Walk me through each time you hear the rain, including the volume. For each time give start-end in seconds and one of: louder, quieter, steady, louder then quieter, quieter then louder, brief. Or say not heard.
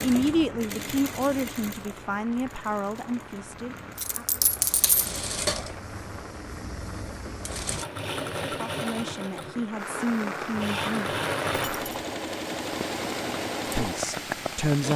0.0-14.9 louder.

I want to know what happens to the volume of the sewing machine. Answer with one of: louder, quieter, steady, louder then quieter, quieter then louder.
louder.